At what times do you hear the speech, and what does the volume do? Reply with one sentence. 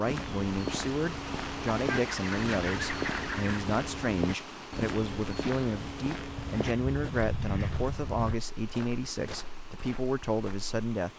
The speech can be heard from 0.0 to 11.1 s, at a steady volume.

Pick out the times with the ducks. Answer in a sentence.
You can hear the ducks from 1.9 to 3.6 s and from 6.3 to 8.3 s.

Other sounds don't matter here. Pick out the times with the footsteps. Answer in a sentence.
The footsteps can be heard from 0.1 to 10.7 s.